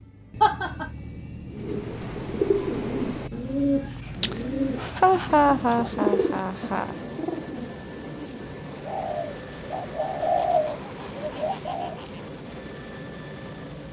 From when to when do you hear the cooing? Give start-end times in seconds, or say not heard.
1.5-11.9.